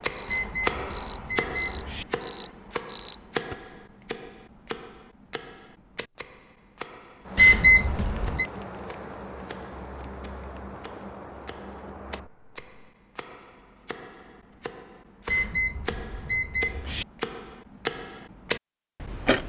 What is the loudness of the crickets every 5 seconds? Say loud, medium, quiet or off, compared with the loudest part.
loud, medium, quiet, off.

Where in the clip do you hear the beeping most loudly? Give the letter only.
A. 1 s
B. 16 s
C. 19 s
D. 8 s
D.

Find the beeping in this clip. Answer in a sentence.
The beeping can be heard from 0.2 to 2.0 s, from 7.3 to 8.4 s and from 15.2 to 17.1 s.